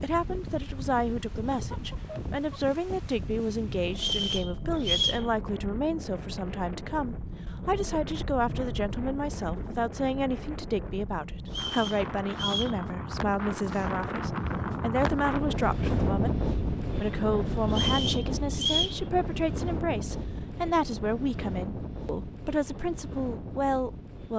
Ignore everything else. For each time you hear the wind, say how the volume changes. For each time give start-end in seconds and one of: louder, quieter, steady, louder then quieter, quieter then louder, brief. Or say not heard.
0.0-24.3 louder then quieter.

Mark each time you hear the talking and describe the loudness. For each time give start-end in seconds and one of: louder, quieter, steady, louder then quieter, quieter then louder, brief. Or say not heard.
0.0-24.3 steady.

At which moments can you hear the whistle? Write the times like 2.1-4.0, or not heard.
4.0-5.2, 11.4-12.8, 17.7-19.0.